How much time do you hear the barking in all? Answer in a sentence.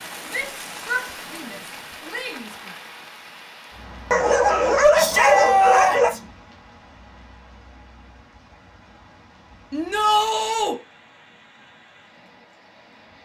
You can hear the barking for 2 seconds altogether.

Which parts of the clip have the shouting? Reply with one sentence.
You can hear the shouting from 0.3 to 2.5 s, from 5.0 to 6.2 s and from 9.7 to 10.8 s.